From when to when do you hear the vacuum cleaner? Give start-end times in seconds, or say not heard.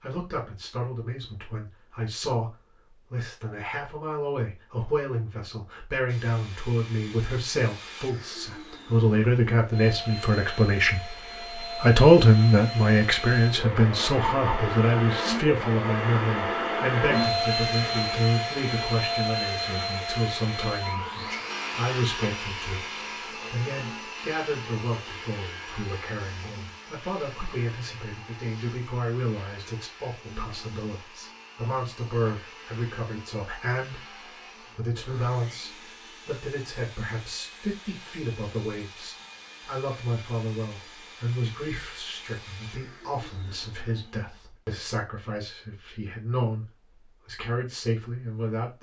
6.0-44.4.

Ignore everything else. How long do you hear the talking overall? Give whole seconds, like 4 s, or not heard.
49 s.